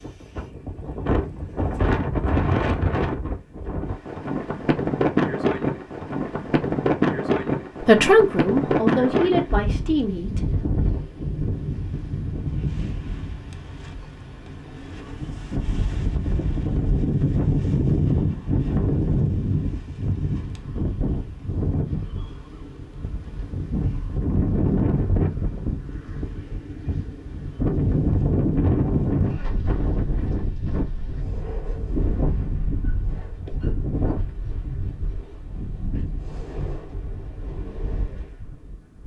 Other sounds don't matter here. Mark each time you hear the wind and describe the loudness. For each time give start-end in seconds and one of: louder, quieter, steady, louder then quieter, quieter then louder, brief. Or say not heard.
0.0-39.0 quieter.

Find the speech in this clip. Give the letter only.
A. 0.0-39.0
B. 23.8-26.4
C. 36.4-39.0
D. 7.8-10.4
D.